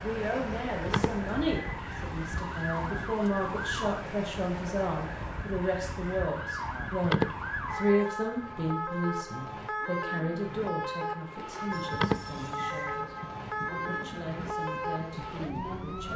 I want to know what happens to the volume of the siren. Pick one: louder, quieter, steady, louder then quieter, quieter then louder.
steady.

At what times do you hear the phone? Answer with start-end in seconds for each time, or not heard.
0.8-1.8, 7.0-8.1, 11.9-13.1.